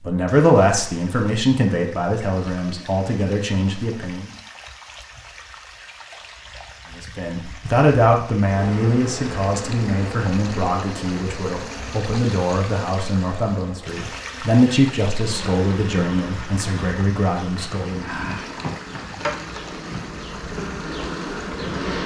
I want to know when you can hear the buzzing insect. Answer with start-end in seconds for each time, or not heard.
8.4-22.0.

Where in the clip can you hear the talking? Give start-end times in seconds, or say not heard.
0.0-4.3, 7.0-18.1.